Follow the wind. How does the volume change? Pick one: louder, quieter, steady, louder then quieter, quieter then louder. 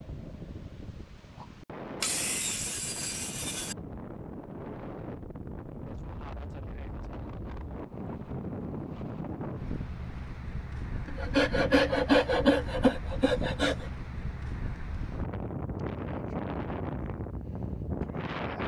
louder.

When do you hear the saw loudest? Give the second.
12 s.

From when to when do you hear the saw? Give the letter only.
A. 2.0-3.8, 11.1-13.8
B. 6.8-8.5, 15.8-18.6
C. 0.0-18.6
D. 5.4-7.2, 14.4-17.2
A.